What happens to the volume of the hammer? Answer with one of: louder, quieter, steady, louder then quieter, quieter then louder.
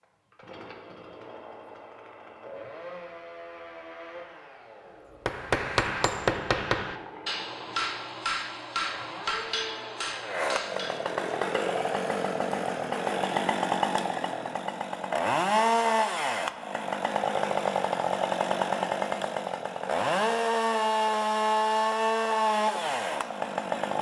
quieter.